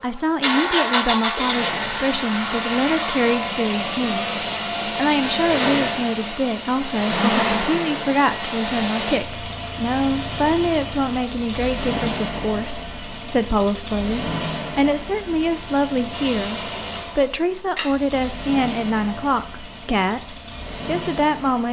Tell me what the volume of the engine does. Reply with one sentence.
The loudness of the engine goes down.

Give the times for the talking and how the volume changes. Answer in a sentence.
You can hear the talking from 0.0 to 21.6 s, at a steady volume.